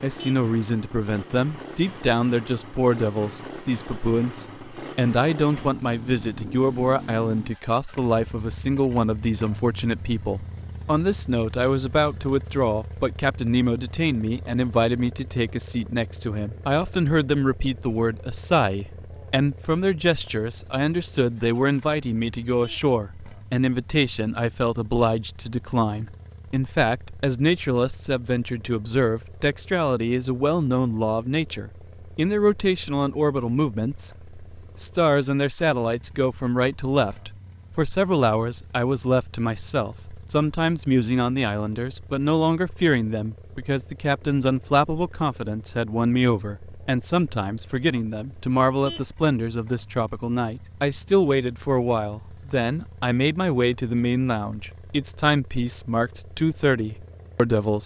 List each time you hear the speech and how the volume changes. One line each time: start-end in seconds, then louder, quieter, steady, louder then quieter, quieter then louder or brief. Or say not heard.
0.0-57.8 steady.